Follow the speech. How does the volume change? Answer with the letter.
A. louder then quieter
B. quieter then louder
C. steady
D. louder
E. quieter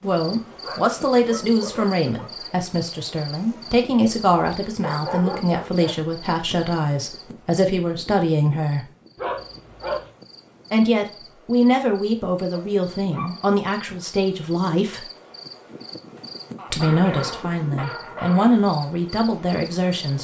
C.